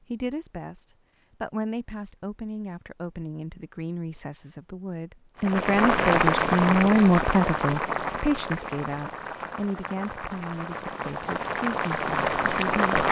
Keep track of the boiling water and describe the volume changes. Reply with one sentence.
The volume of the boiling water goes down, then up.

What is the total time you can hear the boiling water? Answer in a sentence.
The boiling water can be heard for 8 seconds in total.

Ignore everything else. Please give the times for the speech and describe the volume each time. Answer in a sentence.
You can hear the speech from 0.1 to 12.8 s, getting louder then quieter.